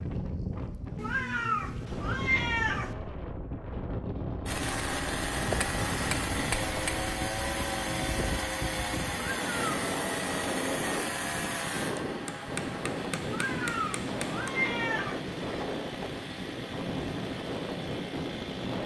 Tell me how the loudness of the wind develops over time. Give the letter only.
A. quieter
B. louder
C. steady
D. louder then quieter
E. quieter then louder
C.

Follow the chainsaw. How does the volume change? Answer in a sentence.
The loudness of the chainsaw goes down.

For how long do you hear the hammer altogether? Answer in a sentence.
The hammer can be heard for 4 seconds in total.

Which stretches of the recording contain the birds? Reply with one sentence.
The birds can't be heard in this clip.